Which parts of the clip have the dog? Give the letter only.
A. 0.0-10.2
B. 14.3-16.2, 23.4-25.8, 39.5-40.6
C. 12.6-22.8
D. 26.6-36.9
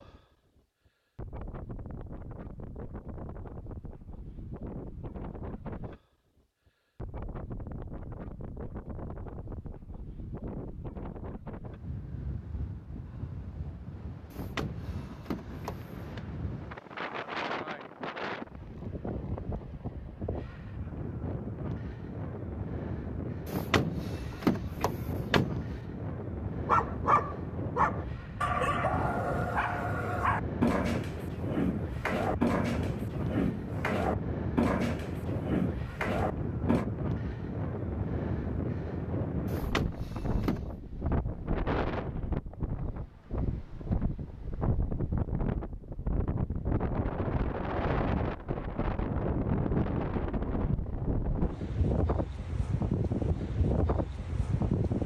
D.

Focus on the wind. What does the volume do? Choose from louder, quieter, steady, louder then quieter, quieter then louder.
louder.